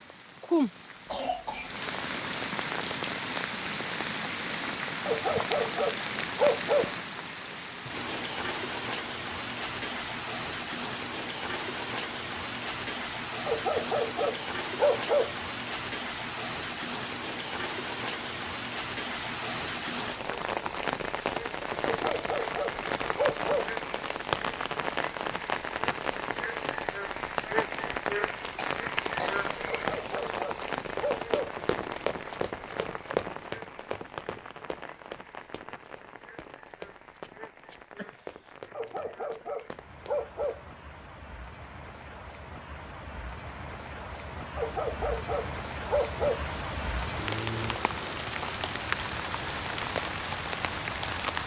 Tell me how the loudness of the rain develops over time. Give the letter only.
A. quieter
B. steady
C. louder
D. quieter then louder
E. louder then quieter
D.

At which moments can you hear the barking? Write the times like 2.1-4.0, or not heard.
5.0-7.0, 13.4-15.3, 21.9-23.7, 29.6-31.6, 38.7-40.6, 44.5-46.5.